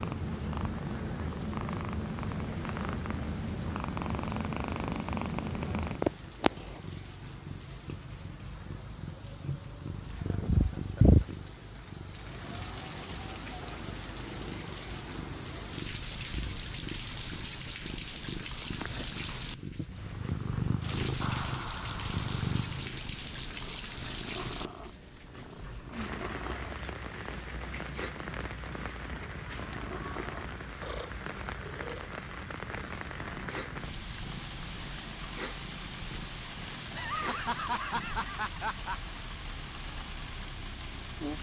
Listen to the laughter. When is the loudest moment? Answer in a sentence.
The loudest moment of the laughter is at 38 seconds.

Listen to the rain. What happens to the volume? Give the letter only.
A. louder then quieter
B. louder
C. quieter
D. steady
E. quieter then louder
B.